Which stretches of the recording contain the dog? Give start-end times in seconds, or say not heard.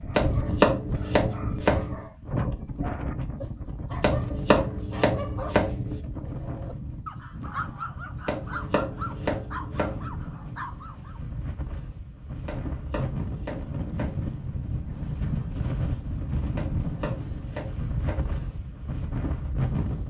0.0-11.2.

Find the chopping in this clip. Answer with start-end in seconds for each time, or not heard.
0.1-2.0, 4.0-6.0, 8.2-10.2, 12.4-14.3, 16.6-18.4.